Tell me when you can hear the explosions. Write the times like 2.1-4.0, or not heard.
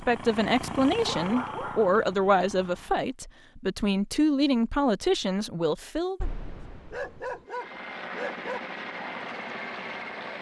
6.2-7.4.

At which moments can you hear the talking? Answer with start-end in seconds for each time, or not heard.
0.0-6.2.